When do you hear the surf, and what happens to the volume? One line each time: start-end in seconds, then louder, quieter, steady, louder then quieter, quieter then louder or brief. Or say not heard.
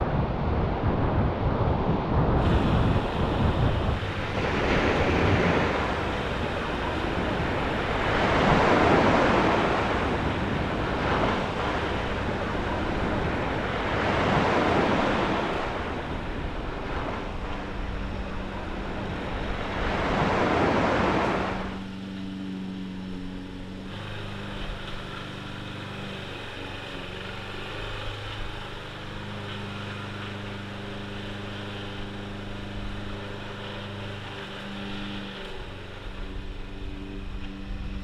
0.0-21.9 steady.